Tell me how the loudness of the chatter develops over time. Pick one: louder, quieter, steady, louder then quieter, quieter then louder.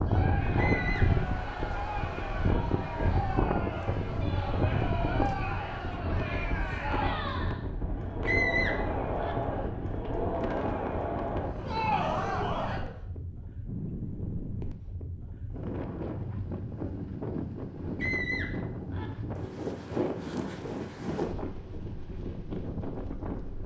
louder.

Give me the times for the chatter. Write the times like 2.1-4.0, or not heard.
0.0-13.0.